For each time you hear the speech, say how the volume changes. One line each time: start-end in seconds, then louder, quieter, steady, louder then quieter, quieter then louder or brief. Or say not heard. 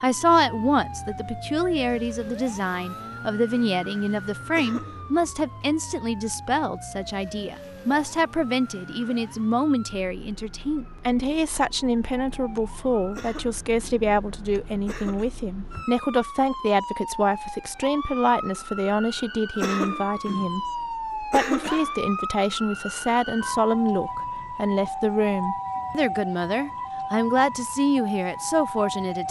0.0-29.2 steady.